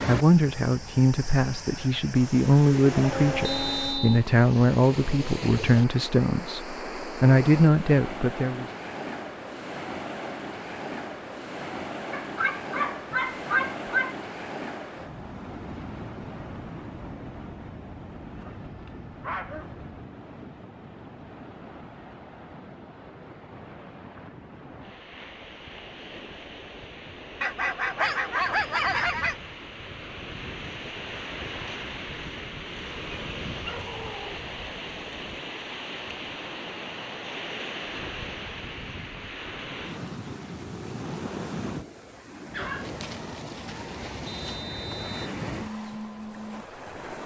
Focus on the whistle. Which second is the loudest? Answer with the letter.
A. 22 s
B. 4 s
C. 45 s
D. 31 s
B.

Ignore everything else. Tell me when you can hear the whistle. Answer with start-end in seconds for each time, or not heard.
3.5-4.2, 44.2-45.3.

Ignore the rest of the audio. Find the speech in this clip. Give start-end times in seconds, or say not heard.
0.1-8.7.